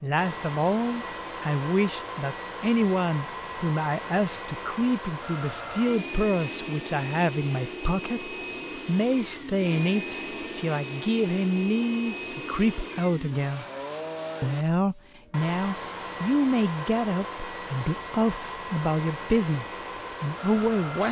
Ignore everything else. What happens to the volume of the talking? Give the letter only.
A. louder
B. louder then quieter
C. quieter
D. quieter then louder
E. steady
E.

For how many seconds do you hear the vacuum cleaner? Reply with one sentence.
The vacuum cleaner can be heard for 21 seconds in total.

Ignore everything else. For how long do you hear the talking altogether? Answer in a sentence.
You can hear the talking for 20 seconds altogether.